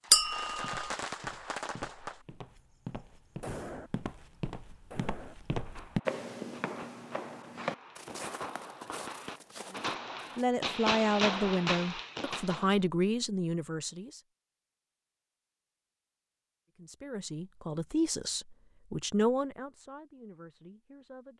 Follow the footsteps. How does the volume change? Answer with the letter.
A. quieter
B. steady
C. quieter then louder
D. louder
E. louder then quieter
E.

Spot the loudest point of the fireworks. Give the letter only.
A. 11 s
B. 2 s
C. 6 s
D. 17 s
A.